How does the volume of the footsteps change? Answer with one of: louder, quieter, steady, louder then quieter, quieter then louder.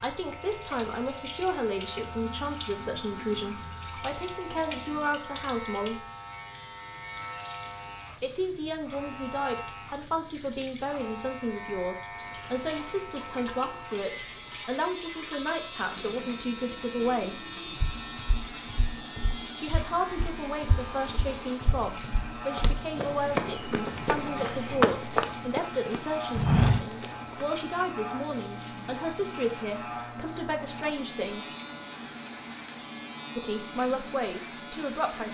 louder.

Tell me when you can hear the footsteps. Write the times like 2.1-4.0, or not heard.
17.8-27.4.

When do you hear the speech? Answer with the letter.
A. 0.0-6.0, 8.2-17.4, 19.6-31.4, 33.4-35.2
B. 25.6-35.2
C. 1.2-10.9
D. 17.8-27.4
A.